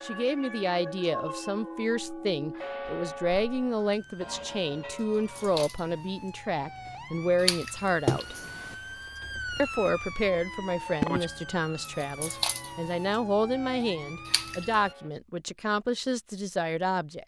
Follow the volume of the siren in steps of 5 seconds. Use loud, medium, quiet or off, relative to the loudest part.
medium, loud, loud, off.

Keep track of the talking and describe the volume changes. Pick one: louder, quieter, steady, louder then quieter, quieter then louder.
steady.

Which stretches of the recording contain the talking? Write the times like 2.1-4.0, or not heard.
0.0-8.3, 9.6-17.2.